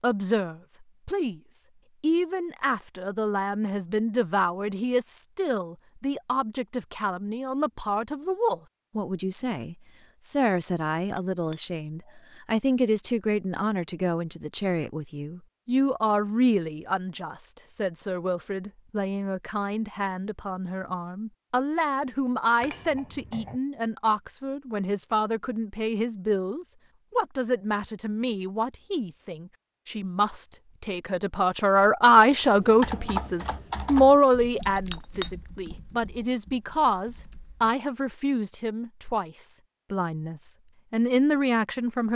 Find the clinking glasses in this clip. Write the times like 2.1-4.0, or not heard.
11.2-12.2, 22.6-23.6, 34.6-35.8.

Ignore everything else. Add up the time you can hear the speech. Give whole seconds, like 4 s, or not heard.
42 s.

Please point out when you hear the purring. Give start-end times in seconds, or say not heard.
not heard.